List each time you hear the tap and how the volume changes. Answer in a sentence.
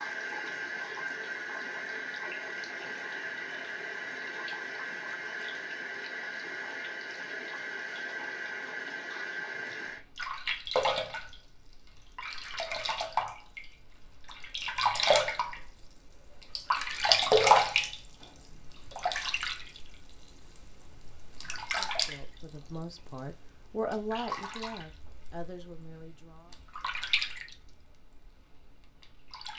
The tap can be heard from 0.0 to 29.5 s, getting louder then quieter.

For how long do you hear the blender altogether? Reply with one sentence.
You can't hear the blender here.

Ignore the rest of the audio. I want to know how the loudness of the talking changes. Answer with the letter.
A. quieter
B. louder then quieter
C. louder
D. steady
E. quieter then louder
B.